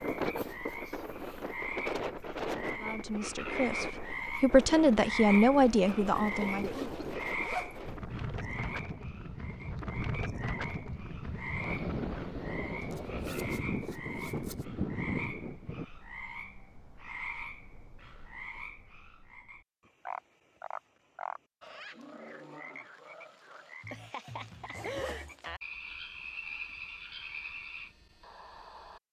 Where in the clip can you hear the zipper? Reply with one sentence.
The zipper can be heard from 6.6 to 7.8 s, from 12.8 to 14.7 s and from 24.7 to 25.4 s.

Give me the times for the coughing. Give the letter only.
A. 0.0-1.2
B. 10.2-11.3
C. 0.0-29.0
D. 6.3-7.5
D.